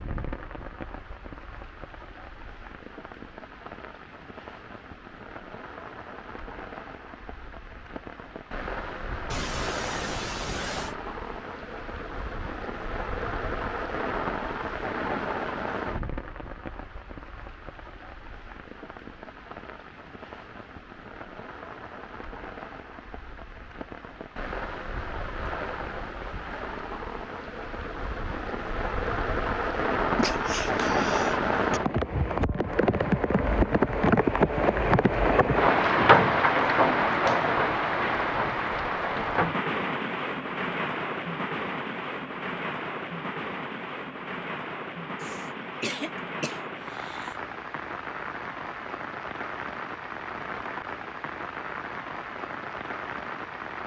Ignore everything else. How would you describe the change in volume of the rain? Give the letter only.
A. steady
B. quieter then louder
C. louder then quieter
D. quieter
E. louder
C.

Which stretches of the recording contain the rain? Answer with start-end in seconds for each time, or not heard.
0.0-53.8.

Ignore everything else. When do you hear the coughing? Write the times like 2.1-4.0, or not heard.
9.3-10.9, 30.1-31.8, 45.2-47.4.